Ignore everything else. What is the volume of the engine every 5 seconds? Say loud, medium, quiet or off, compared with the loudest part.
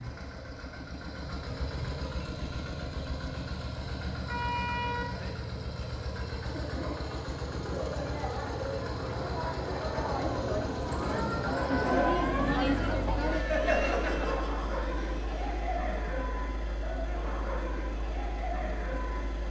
loud, loud, loud, medium.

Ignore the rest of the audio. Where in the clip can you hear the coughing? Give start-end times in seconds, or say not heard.
not heard.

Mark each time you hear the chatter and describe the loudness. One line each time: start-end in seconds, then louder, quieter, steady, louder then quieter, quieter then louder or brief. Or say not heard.
6.5-19.4 louder then quieter.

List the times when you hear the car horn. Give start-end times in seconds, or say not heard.
4.2-5.3, 13.2-13.7.